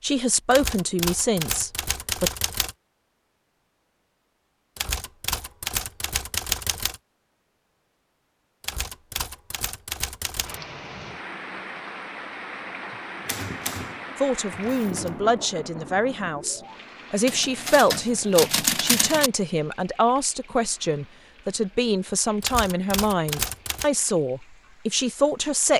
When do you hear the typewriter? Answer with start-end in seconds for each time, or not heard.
0.5-2.8, 4.8-7.0, 8.6-10.6, 13.2-15.3, 17.2-19.3, 22.4-23.9.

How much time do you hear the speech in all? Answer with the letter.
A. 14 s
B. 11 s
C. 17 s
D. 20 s
A.